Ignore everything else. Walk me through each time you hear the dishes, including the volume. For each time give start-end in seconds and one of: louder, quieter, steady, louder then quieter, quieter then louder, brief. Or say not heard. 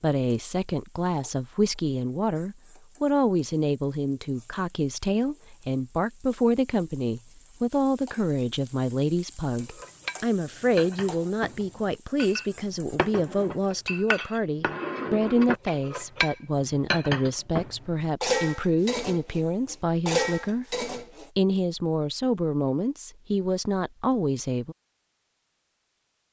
9.6-21.3 louder.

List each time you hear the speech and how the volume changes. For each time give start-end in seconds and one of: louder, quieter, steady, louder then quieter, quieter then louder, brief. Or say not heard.
0.0-24.8 steady.